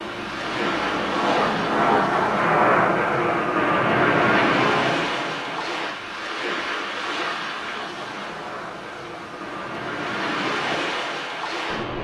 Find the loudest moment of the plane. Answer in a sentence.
The volume of the plane peaks at 2 seconds.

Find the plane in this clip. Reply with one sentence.
The plane can be heard from 0.0 to 12.0 s.